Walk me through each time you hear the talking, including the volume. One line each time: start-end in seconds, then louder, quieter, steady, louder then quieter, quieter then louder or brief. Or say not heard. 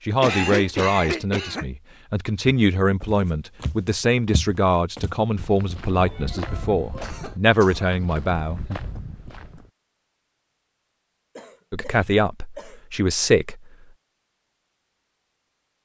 0.1-8.8 steady
11.7-13.7 brief.